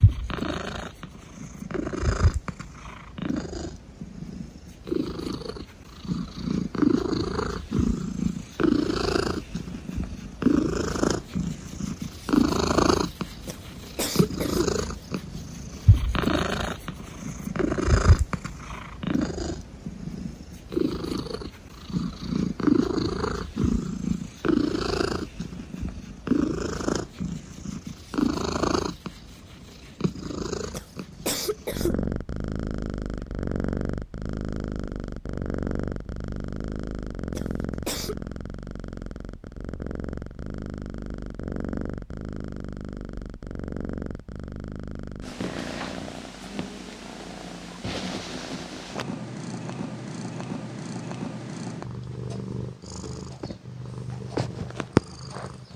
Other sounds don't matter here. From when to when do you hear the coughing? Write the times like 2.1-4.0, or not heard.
13.4-14.7, 30.7-31.9, 37.4-38.1.